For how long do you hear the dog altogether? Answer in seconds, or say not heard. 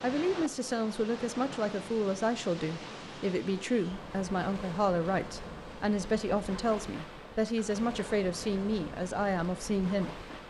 not heard.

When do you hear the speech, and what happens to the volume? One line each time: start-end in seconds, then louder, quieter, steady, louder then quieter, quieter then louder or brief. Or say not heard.
0.0-10.2 steady.